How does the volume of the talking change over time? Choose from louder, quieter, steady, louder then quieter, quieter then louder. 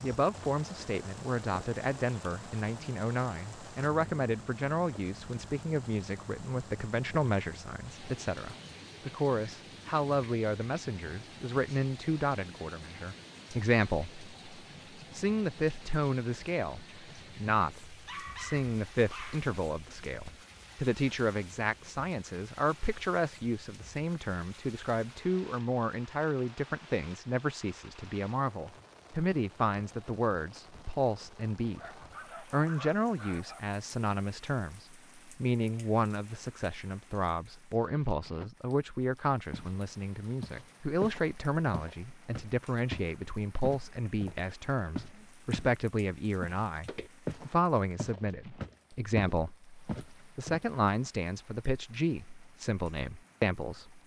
steady.